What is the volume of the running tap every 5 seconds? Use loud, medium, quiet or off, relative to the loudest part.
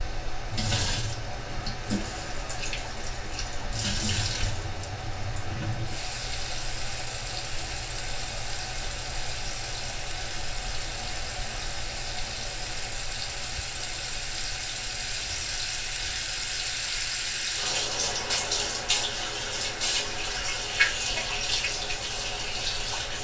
medium, medium, medium, loud, loud.